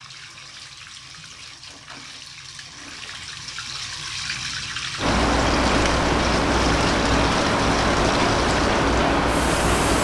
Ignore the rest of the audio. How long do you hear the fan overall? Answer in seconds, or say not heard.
5 s.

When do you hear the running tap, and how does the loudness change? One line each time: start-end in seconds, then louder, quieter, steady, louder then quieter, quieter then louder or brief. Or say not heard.
0.0-9.9 louder.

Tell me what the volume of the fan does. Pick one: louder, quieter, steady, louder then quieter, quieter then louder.
steady.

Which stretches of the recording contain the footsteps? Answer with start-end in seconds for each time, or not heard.
not heard.